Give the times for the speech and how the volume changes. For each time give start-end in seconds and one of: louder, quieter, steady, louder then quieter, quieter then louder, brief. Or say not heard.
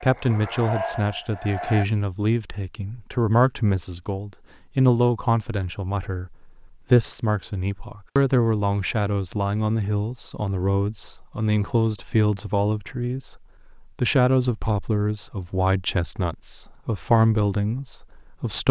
0.0-18.6 steady.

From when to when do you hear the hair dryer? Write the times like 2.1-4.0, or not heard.
0.0-1.9.